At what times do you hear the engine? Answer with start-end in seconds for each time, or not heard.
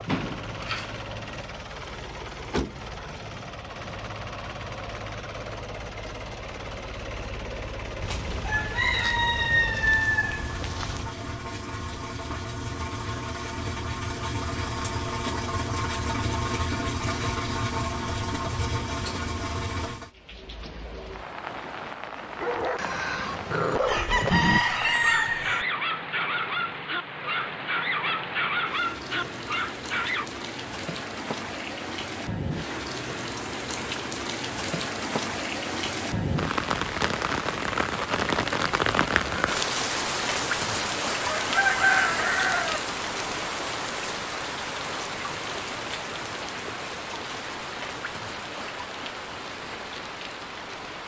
0.0-20.1.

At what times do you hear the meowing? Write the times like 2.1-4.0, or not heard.
not heard.